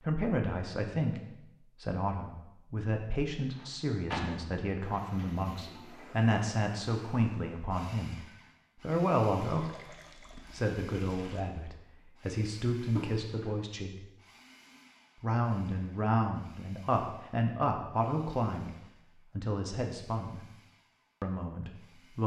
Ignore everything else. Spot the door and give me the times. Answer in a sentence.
You can hear the door from 3.5 to 5.3 s and from 12.9 to 13.5 s.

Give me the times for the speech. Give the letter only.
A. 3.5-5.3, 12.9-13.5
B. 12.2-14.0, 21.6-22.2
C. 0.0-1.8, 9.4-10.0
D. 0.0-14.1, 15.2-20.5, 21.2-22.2
D.